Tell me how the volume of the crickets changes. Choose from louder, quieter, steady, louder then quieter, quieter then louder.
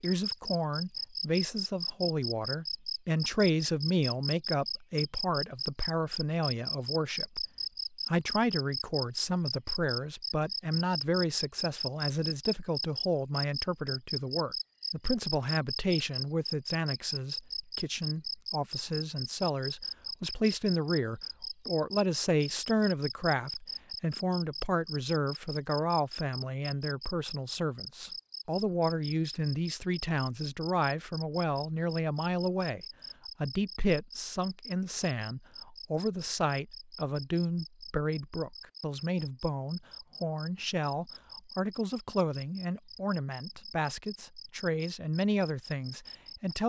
quieter.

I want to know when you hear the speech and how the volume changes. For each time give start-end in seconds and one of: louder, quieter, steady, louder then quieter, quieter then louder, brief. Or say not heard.
0.0-46.6 steady.